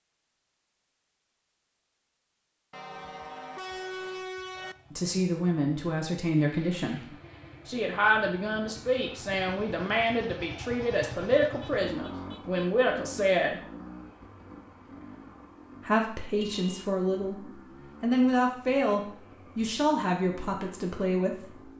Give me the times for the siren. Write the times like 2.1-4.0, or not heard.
not heard.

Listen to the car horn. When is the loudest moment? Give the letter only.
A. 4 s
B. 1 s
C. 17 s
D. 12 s
A.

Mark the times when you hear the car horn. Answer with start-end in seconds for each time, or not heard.
2.7-4.8, 11.4-12.8, 16.4-16.9.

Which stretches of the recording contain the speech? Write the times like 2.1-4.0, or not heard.
4.9-7.0, 7.7-13.6, 15.8-17.4, 18.0-21.6.